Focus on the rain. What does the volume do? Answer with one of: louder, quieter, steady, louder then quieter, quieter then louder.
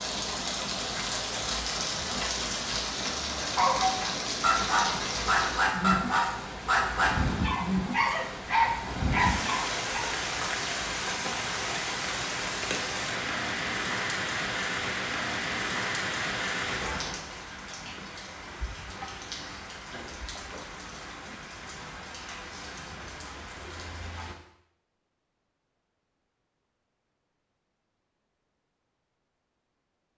quieter.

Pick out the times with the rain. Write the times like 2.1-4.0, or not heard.
0.0-24.4.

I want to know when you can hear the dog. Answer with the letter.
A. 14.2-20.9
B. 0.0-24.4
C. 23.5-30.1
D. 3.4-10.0
D.